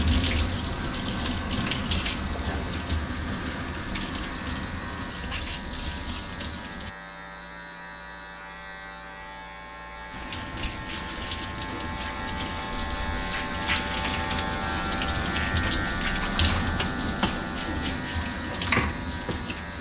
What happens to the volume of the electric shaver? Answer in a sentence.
The volume of the electric shaver goes up.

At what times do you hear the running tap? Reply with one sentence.
The running tap can be heard from 0.0 to 7.0 s and from 10.1 to 19.7 s.